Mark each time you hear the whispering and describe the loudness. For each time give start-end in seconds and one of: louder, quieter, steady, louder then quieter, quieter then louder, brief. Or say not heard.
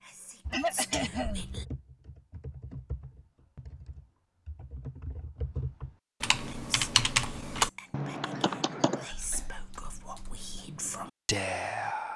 0.0-1.6 brief
6.5-12.1 louder.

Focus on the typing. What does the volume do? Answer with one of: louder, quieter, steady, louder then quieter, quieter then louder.
louder then quieter.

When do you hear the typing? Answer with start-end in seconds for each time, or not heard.
0.5-10.5.